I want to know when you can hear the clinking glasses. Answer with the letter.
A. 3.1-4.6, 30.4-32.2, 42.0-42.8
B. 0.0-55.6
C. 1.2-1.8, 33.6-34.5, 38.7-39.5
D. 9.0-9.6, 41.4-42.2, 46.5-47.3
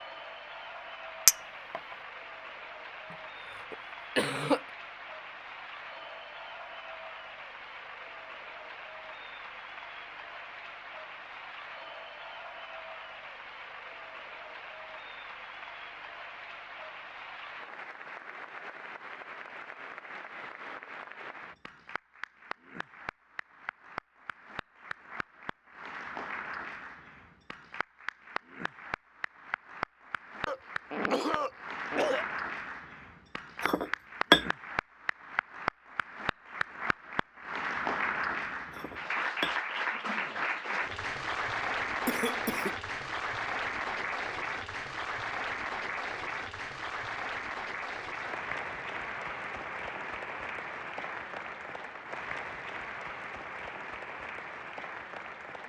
C.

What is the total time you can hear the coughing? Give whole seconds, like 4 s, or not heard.
4 s.